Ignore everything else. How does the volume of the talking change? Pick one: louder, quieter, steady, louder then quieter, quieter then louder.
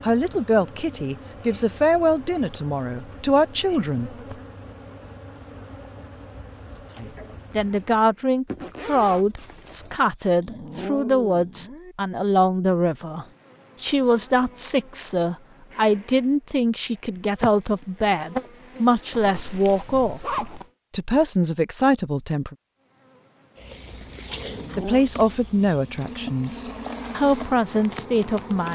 steady.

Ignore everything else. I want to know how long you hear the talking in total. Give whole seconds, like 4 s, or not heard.
24 s.